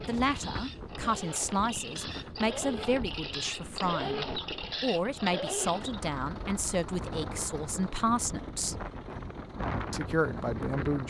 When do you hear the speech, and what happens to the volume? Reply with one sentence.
The speech can be heard from 0.0 to 8.8 s, at a steady volume; and briefly from 9.9 to 11.0 s.